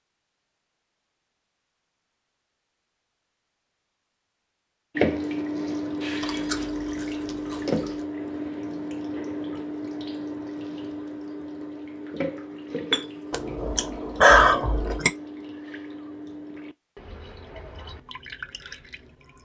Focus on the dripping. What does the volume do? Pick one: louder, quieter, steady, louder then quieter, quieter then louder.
quieter.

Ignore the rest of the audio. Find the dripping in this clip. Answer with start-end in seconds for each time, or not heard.
5.0-19.4.